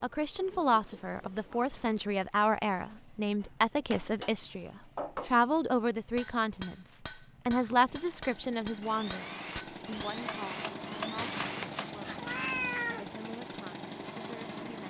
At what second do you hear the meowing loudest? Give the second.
13 s.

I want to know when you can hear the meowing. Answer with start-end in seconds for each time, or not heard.
11.2-13.1.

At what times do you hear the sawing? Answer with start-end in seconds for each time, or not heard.
8.8-12.5.